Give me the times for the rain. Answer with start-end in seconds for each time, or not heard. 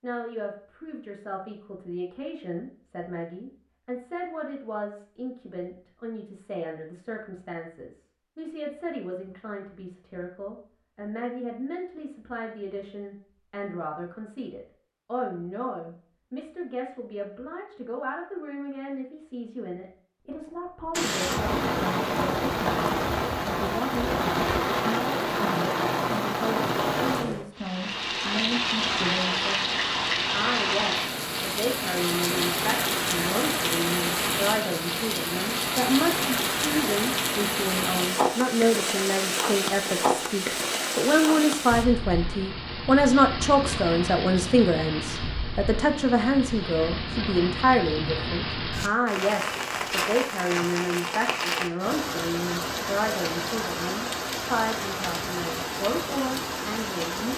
20.9-57.3.